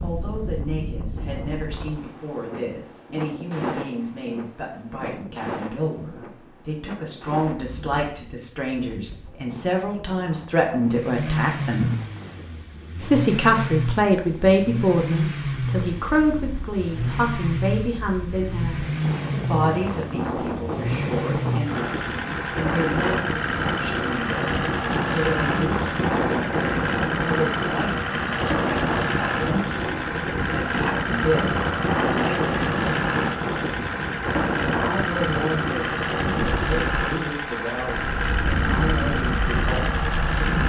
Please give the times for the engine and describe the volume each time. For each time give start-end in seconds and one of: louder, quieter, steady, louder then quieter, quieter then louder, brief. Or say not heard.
10.8-40.6 steady.